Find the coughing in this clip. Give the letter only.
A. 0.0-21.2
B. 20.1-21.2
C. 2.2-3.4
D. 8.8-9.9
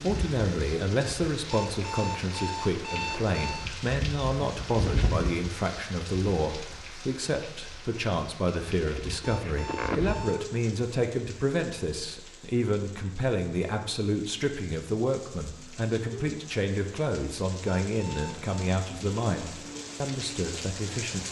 D.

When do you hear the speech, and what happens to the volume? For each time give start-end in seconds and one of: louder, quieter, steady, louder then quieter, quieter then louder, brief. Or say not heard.
0.0-21.2 steady.